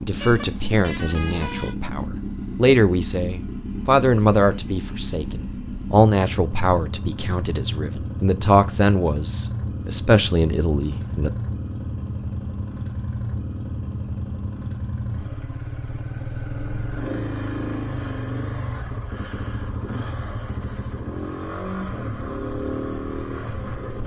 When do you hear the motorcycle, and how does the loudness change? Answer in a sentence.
You can hear the motorcycle from 0.0 to 24.0 s, at a steady volume.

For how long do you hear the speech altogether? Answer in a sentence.
You can hear the speech for 11 seconds altogether.